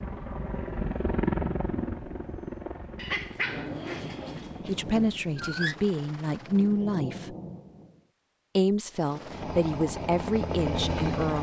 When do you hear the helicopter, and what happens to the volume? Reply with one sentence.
The helicopter can be heard from 0.0 to 6.8 s, getting quieter; and briefly from 8.9 to 11.3 s.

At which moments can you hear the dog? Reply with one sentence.
You can hear the dog from 3.0 to 5.8 s.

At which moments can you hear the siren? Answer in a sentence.
You can't hear the siren here.